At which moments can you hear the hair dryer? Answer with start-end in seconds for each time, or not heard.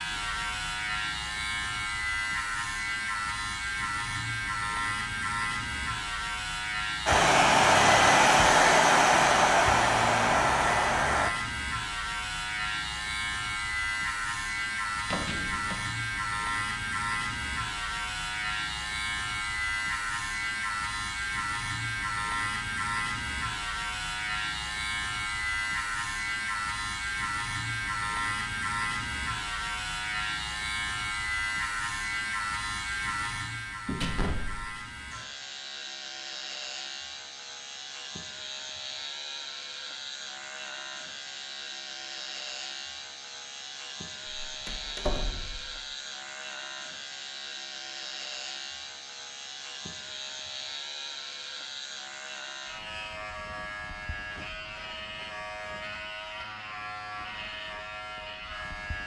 7.0-11.3.